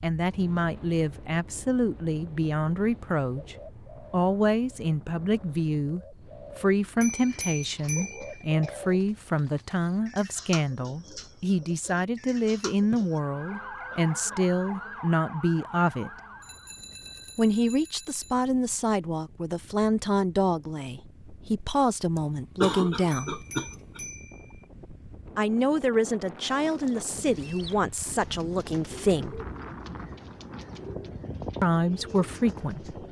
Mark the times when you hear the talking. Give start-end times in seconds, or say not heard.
0.0-16.1, 17.4-23.4, 25.4-29.4, 31.6-33.0.